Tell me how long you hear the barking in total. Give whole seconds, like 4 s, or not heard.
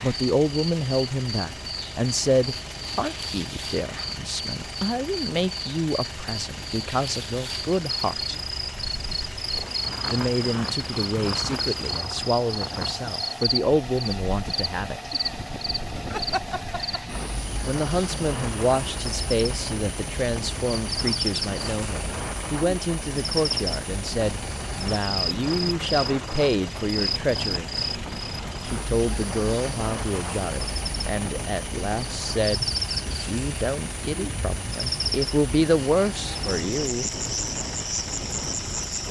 not heard.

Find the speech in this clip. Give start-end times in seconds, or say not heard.
0.0-8.3, 10.1-15.1, 17.6-27.7, 28.6-37.0.